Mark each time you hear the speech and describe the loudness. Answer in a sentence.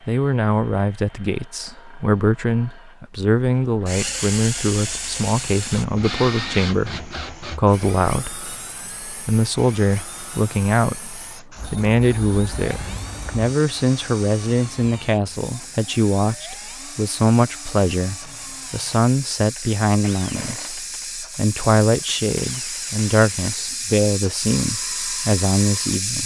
The speech can be heard from 0.1 to 26.2 s, at a steady volume.